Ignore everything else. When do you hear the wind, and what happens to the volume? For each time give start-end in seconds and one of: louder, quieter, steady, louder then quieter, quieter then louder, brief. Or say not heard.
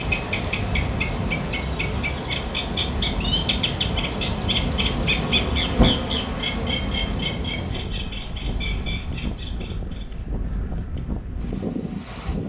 0.0-12.4 steady.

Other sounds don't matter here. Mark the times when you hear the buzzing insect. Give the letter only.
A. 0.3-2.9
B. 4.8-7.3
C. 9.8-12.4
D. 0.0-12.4
B.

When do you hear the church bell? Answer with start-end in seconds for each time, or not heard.
not heard.